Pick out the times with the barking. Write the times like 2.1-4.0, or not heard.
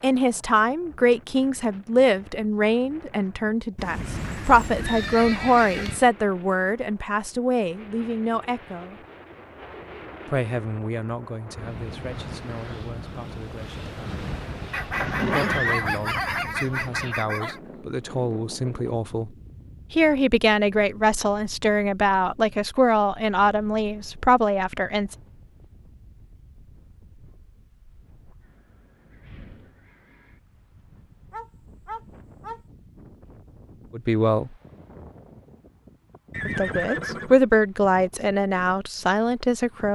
14.7-17.6, 31.3-32.6.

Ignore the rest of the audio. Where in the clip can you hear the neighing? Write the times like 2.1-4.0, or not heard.
3.8-6.1, 14.9-15.9, 36.3-37.4.